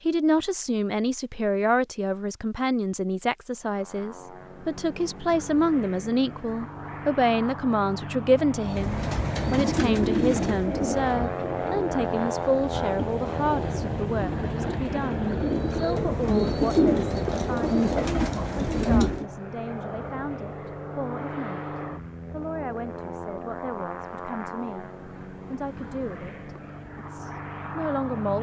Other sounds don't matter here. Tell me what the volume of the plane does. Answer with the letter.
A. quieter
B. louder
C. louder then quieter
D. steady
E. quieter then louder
C.